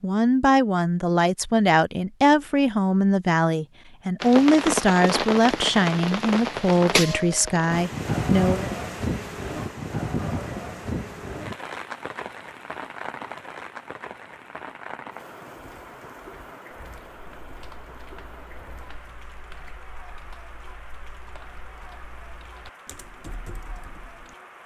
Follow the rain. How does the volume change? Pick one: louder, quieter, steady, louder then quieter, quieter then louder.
quieter.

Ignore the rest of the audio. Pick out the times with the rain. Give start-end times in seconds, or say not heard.
4.2-24.6.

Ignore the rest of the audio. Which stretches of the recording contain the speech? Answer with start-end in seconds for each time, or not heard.
0.0-8.7.